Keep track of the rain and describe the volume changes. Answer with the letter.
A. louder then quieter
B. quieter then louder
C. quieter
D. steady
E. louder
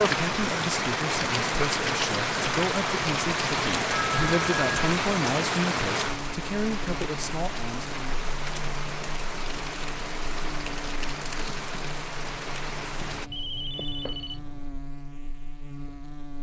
C.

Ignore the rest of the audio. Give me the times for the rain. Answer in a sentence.
You can hear the rain from 0.0 to 13.3 s.